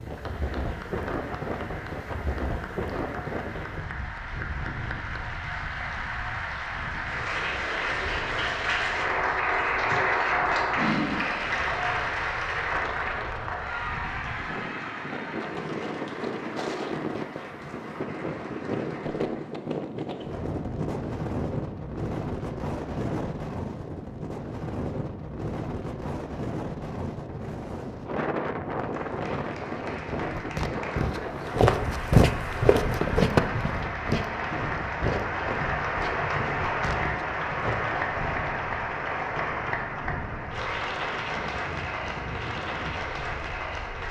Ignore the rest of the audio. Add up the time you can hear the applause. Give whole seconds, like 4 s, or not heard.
35 s.